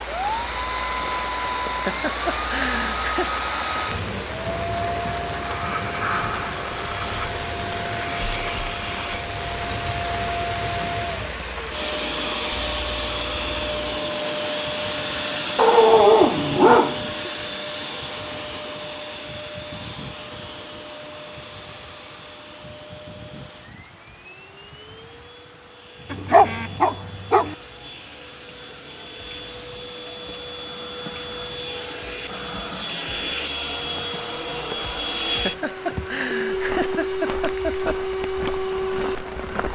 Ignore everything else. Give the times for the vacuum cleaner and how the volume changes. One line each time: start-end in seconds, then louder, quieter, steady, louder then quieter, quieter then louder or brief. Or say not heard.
0.0-39.7 quieter then louder.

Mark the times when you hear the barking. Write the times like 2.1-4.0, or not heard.
15.6-17.3, 26.1-27.6.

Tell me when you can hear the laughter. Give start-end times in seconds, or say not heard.
1.6-3.4, 35.2-38.0.